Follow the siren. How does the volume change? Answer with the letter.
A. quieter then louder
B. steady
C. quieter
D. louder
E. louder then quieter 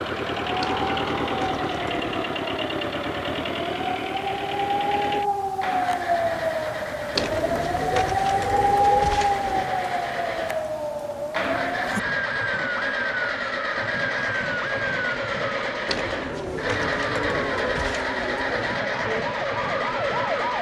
E.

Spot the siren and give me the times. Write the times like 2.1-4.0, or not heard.
0.0-20.5.